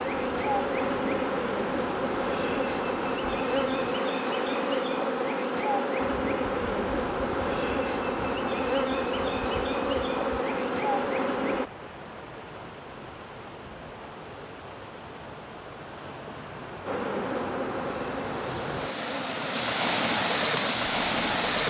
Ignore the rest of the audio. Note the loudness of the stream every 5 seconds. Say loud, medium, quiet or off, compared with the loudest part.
quiet, quiet, quiet, medium, loud.